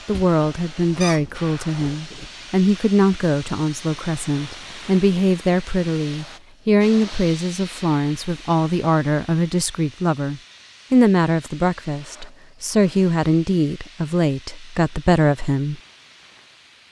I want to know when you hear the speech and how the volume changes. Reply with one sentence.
You can hear the speech from 0.1 to 15.8 s, at a steady volume.